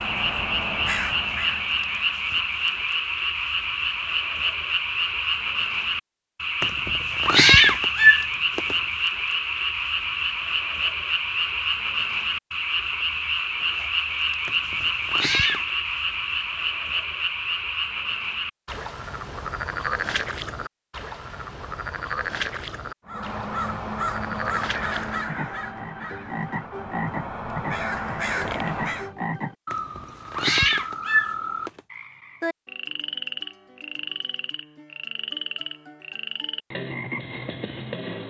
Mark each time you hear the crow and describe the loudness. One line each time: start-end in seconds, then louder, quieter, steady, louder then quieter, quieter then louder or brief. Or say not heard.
0.0-3.0 brief
23.1-29.1 quieter then louder.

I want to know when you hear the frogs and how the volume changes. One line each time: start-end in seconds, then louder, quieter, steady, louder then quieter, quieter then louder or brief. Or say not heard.
0.0-38.2 quieter.